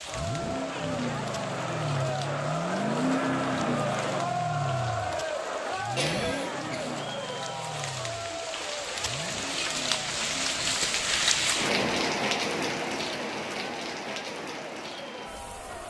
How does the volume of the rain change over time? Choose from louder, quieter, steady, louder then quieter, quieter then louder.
louder then quieter.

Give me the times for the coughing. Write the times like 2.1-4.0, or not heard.
6.0-7.0.